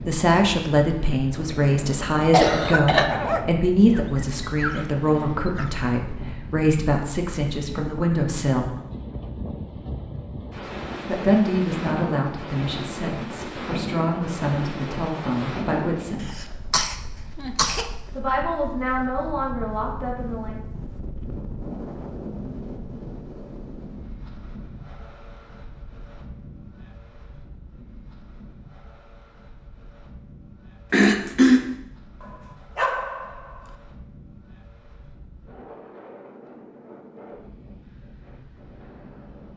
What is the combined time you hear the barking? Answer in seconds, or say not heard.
4 s.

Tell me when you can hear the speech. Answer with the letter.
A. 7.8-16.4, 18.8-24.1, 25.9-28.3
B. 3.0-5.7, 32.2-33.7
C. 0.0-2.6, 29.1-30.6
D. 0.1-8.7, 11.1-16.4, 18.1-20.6
D.